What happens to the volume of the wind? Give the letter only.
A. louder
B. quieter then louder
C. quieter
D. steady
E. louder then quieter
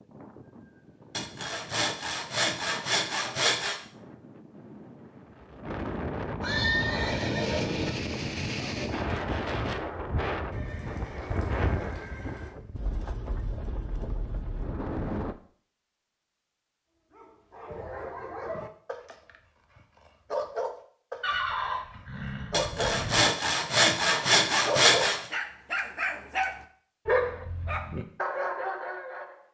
E.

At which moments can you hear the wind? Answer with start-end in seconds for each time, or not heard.
0.0-15.3.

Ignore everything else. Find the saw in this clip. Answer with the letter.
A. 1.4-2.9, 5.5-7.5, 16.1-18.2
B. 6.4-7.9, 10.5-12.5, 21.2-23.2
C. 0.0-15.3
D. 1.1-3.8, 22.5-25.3
D.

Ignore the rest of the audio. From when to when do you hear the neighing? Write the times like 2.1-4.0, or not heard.
6.4-7.9, 10.5-12.5, 21.2-23.2.